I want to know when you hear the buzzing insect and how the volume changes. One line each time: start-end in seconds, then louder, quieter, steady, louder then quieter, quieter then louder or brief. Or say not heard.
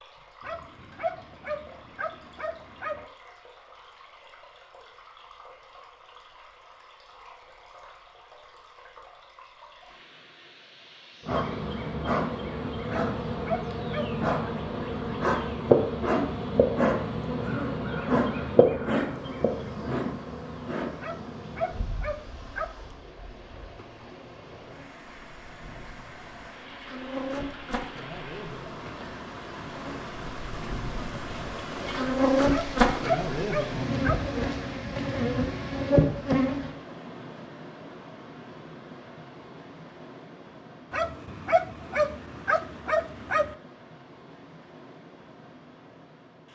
11.2-36.7 quieter then louder.